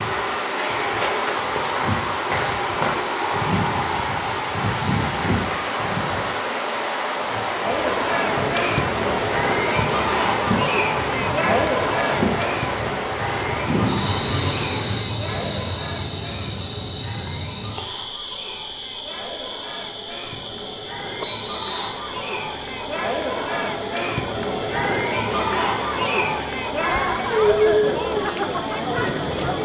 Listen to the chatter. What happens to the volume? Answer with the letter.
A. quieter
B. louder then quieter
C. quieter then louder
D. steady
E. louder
C.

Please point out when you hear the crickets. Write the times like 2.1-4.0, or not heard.
0.0-29.6.